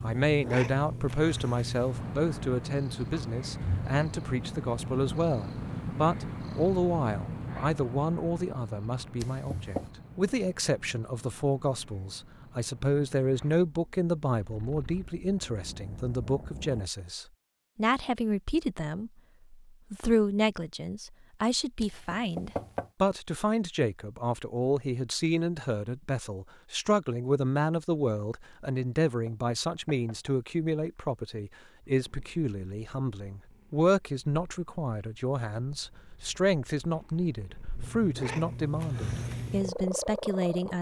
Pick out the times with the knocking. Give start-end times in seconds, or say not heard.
9.2-9.9, 21.8-22.9, 28.5-30.3.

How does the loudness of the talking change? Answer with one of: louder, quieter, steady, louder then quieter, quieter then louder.
steady.